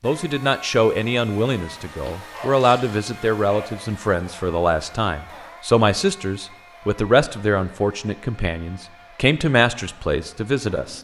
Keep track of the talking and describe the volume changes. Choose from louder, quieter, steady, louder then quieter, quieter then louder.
steady.